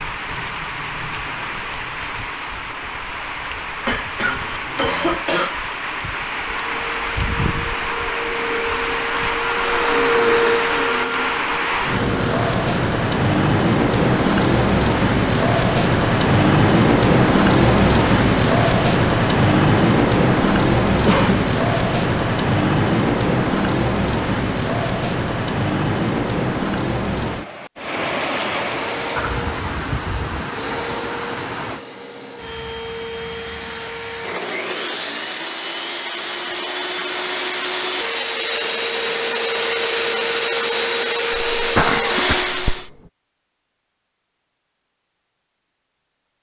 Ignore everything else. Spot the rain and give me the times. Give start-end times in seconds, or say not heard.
0.0-31.8.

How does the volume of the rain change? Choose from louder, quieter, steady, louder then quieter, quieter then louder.
louder then quieter.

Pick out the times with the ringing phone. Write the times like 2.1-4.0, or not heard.
not heard.